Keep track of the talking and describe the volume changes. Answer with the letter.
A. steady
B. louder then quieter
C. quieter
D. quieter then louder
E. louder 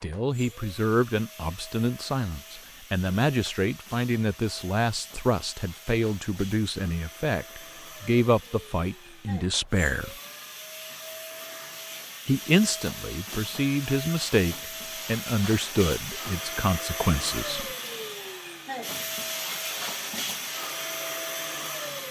A.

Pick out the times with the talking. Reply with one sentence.
You can hear the talking from 0.0 to 10.2 s and from 12.2 to 17.6 s.